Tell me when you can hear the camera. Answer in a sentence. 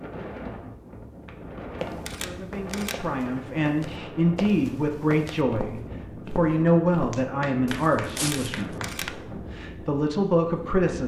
You can hear the camera from 2.0 to 3.0 s and from 8.2 to 9.1 s.